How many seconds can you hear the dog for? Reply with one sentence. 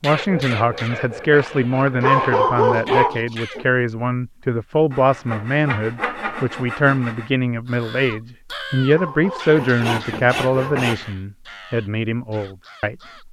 The dog can be heard for 4 seconds in total.